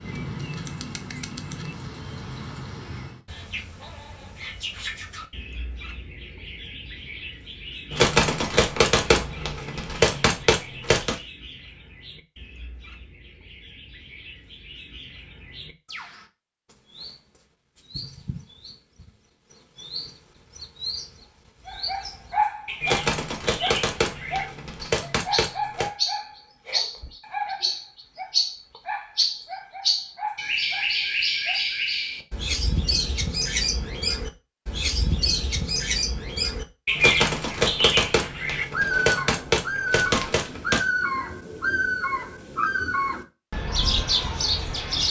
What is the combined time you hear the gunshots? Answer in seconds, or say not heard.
10 s.